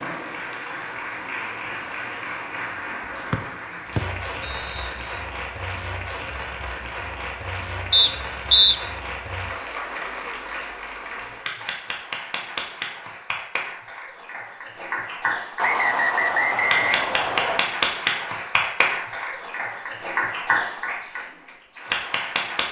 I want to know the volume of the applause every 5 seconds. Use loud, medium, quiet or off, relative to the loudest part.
medium, medium, medium, loud, loud.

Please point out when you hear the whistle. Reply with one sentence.
The whistle can be heard from 3.3 to 5.0 s, from 7.9 to 8.8 s and from 15.6 to 17.6 s.